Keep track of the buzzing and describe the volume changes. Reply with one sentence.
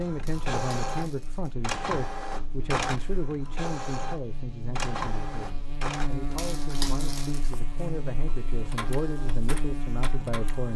The volume of the buzzing goes up.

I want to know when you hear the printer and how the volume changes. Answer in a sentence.
You can hear the printer from 0.0 to 10.7 s, getting quieter then louder.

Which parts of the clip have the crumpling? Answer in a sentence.
You can hear the crumpling from 0.2 to 1.5 s and from 6.3 to 7.5 s.